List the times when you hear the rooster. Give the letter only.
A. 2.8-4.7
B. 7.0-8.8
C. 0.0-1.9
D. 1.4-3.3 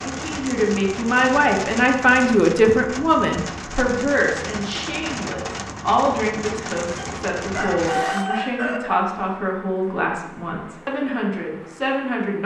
B.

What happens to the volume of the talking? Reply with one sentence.
The volume of the talking goes down.